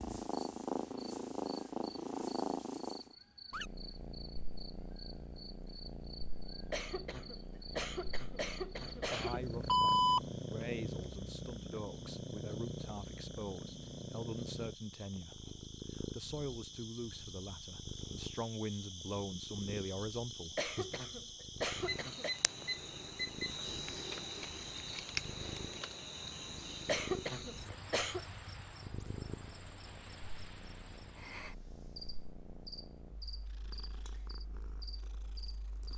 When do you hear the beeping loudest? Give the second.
10 s.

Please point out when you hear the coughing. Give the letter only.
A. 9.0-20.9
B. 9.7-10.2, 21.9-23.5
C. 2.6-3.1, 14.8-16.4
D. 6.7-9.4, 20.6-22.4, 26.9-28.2
D.